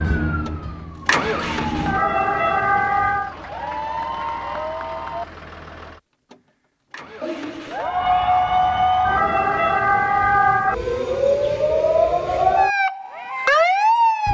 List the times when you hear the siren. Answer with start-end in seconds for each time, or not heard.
0.0-3.4, 7.8-14.2.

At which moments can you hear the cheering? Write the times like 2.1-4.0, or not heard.
3.3-5.2, 7.2-9.2.